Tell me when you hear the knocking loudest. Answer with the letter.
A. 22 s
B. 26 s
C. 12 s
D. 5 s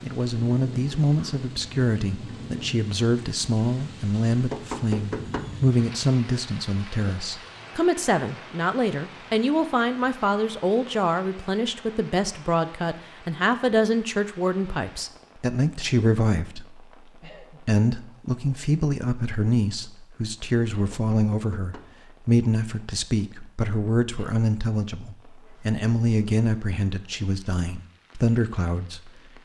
D.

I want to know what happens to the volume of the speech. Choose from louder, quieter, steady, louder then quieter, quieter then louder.
steady.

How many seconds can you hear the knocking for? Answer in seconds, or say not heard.
2 s.